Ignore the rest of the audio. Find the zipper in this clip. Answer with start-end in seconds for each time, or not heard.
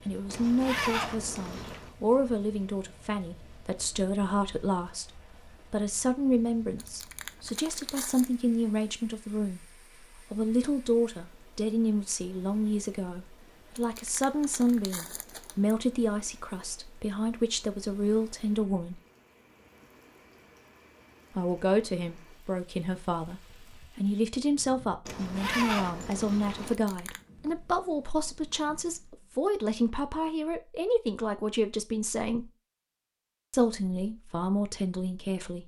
0.3-1.9, 25.1-26.8.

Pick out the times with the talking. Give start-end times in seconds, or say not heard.
0.1-19.0, 21.4-32.5, 33.5-35.6.